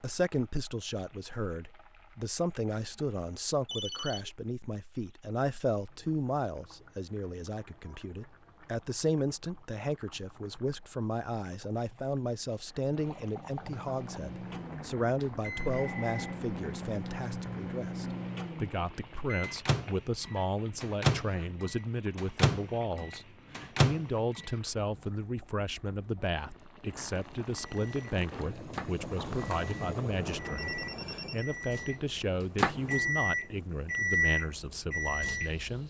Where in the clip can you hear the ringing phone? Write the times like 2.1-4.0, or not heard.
3.6-4.3, 15.7-16.4, 29.1-31.4.